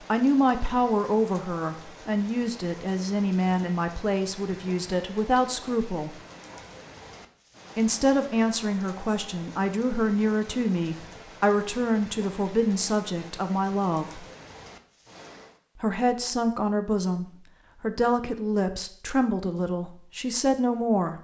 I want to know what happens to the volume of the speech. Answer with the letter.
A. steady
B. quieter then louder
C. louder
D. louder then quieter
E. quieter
A.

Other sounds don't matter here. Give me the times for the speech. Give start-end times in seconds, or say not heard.
0.0-6.2, 7.8-14.2, 15.8-21.1.